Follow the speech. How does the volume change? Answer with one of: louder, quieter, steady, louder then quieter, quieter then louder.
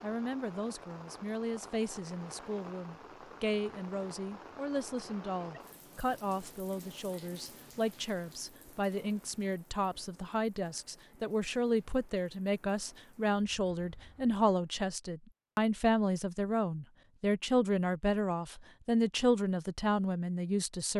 louder.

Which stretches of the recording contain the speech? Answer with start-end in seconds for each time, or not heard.
0.0-20.9.